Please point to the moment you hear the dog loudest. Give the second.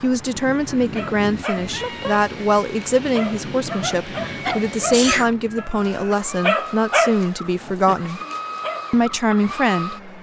7 s.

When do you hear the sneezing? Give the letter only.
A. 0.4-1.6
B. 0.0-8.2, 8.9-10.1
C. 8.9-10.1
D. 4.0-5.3
D.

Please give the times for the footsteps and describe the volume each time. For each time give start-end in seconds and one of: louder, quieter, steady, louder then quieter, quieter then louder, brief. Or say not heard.
not heard.